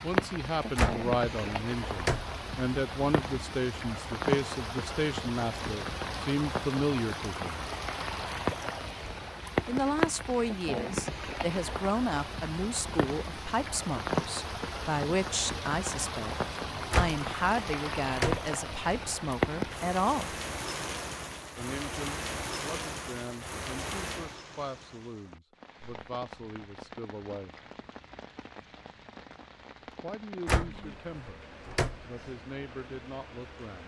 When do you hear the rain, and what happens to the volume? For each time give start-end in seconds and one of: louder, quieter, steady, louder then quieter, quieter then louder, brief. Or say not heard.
0.0-33.8 quieter.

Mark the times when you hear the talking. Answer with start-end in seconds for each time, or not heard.
0.0-7.7, 9.7-20.3, 21.6-27.6, 30.0-31.4, 32.0-33.8.